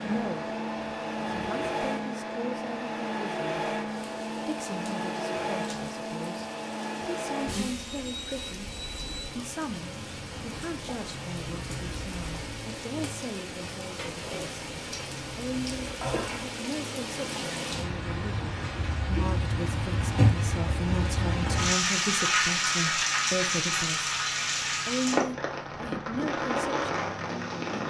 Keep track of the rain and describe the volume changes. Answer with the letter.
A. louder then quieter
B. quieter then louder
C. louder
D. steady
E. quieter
C.